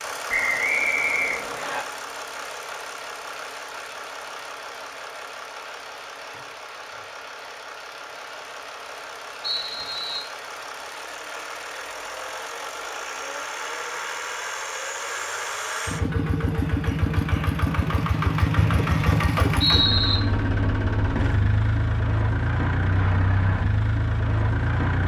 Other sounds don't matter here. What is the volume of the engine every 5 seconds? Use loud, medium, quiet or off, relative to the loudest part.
medium, quiet, medium, loud, loud.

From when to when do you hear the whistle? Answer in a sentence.
The whistle can be heard from 0.2 to 1.8 s, from 9.4 to 10.2 s and from 18.6 to 20.2 s.